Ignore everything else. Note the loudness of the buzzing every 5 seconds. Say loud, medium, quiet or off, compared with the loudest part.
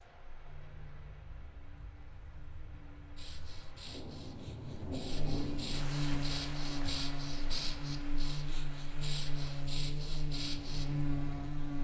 quiet, loud, loud.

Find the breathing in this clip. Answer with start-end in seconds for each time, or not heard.
3.1-10.8.